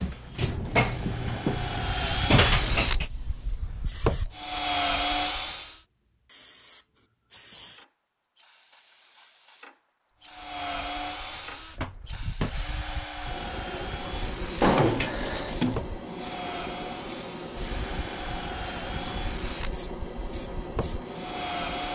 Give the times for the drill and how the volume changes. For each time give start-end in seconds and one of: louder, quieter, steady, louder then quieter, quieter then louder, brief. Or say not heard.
0.0-5.8 louder
10.2-21.9 steady.